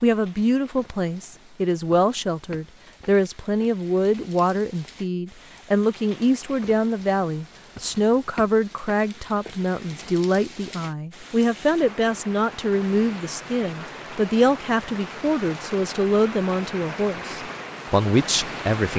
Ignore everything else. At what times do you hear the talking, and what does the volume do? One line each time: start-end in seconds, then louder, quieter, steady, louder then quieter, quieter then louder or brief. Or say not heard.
0.0-18.9 steady.